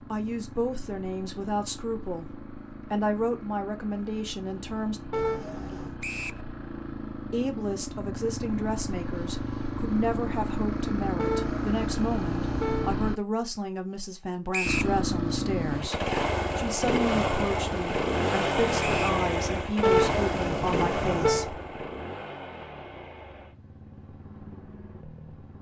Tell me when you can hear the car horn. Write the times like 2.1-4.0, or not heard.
5.1-6.0, 11.2-12.9, 19.8-21.4.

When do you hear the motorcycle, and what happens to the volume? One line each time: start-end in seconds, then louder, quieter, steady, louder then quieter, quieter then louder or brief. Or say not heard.
0.0-13.2 louder
14.7-25.5 quieter.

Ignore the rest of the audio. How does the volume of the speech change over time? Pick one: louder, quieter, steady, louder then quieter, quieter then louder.
steady.